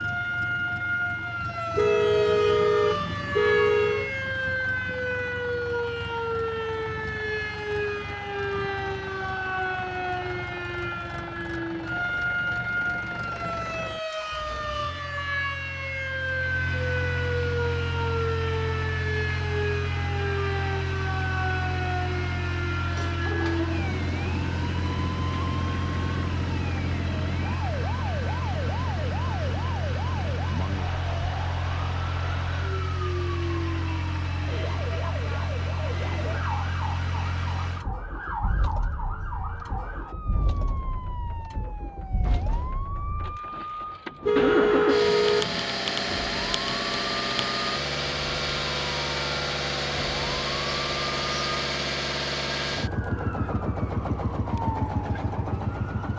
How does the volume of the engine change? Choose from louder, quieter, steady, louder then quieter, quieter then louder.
louder.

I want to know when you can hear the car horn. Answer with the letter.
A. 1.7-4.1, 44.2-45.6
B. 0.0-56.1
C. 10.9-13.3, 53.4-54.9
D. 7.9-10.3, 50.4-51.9
A.